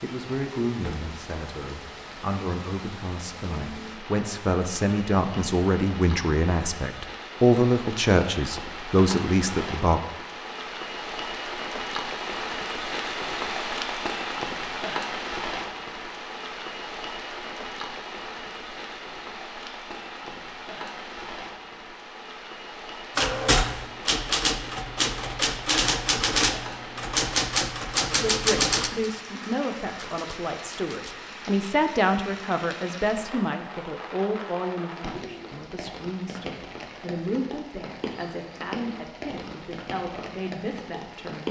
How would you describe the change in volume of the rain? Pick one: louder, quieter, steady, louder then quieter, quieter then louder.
louder then quieter.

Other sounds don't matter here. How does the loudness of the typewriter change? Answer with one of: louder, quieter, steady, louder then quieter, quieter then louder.
quieter.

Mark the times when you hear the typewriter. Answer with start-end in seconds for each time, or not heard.
23.1-31.1.